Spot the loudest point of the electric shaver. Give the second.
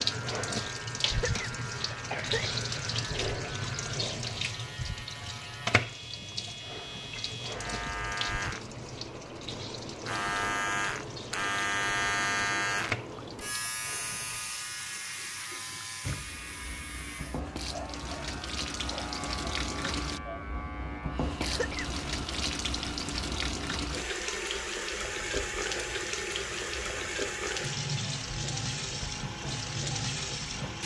12 s.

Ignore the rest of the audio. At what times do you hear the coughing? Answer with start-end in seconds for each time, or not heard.
1.0-2.6, 21.4-21.9.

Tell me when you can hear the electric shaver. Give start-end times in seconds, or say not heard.
0.0-30.8.